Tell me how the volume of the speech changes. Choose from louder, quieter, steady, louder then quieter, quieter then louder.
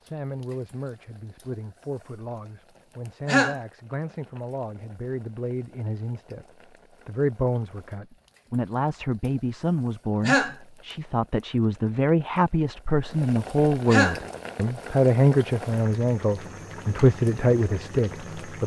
louder.